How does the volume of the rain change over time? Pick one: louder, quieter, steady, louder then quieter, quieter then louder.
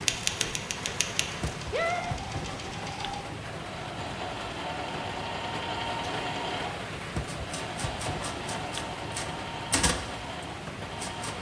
steady.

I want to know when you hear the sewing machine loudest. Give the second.
6 s.